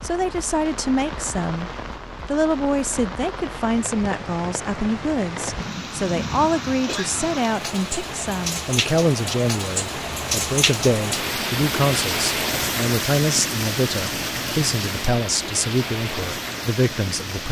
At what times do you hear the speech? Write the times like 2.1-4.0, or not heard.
0.0-17.4.